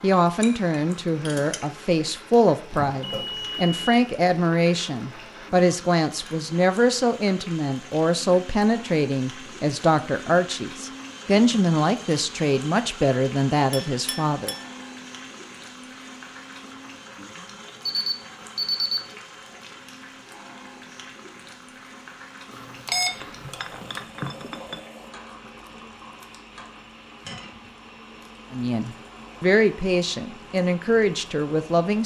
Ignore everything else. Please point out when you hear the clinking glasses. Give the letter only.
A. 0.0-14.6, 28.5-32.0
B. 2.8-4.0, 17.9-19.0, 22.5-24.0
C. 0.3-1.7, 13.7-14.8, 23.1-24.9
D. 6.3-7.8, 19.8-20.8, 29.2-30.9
C.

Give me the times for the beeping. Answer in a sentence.
You can hear the beeping from 2.8 to 4.0 s, from 17.9 to 19.0 s and from 22.5 to 24.0 s.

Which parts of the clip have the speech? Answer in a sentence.
You can hear the speech from 0.0 to 14.6 s and from 28.5 to 32.0 s.